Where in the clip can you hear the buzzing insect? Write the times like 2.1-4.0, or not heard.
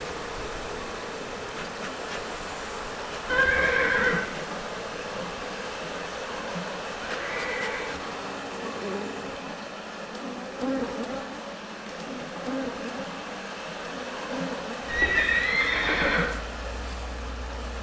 0.0-17.7.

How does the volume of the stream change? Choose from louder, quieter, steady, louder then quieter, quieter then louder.
steady.